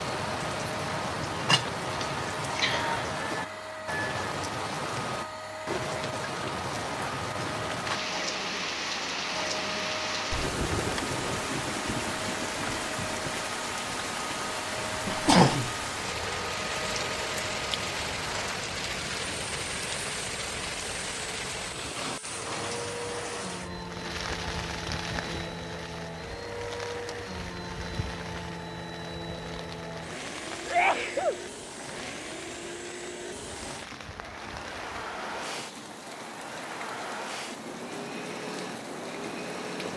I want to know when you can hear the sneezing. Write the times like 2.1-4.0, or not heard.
1.9-3.0, 15.1-16.2, 30.6-31.4.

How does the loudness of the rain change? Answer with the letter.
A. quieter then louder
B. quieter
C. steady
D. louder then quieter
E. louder
B.